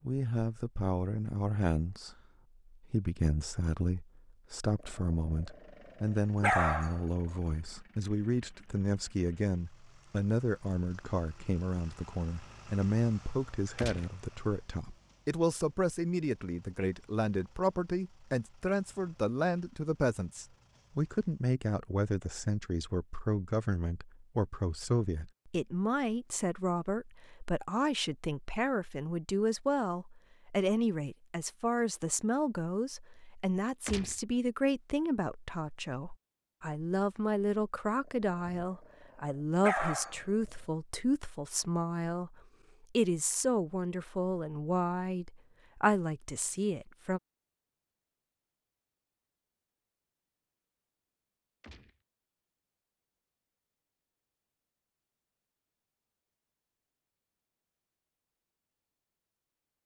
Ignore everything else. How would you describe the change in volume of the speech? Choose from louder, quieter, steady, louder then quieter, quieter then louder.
steady.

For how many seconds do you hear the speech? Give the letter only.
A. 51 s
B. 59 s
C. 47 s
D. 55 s
C.